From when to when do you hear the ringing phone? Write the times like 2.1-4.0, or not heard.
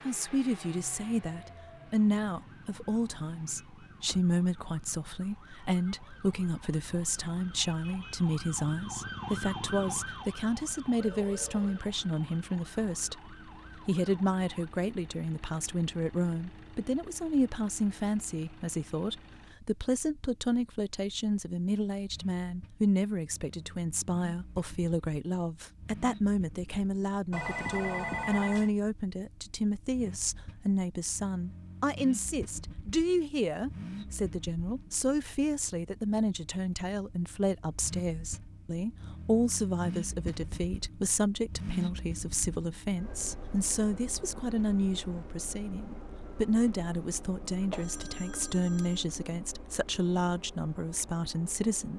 11.0-11.8, 27.3-28.7, 47.7-49.0.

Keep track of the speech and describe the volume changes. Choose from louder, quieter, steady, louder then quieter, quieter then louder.
steady.